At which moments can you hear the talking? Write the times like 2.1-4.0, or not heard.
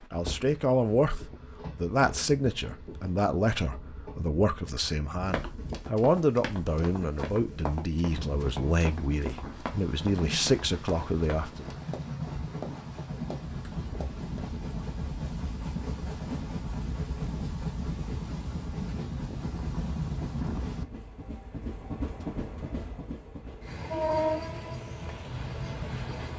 0.1-11.8.